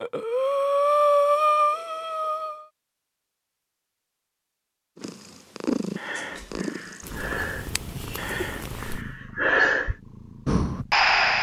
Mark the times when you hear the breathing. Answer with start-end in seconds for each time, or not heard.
0.0-2.6, 6.0-11.3.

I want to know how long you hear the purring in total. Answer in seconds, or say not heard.
6 s.